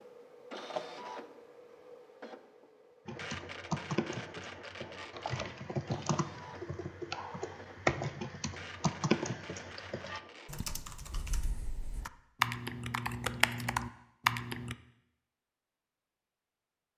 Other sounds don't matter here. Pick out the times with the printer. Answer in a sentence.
You can hear the printer from 0.0 to 10.6 s.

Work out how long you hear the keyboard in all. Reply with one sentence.
The keyboard can be heard for 12 seconds in total.